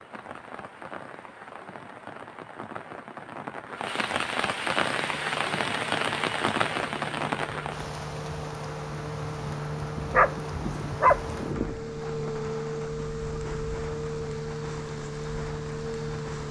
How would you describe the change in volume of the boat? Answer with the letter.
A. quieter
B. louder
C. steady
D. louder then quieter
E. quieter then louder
B.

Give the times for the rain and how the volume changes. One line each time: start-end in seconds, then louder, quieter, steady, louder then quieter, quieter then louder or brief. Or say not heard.
0.0-16.4 louder then quieter.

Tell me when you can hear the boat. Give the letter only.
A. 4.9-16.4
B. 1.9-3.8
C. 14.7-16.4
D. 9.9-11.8
A.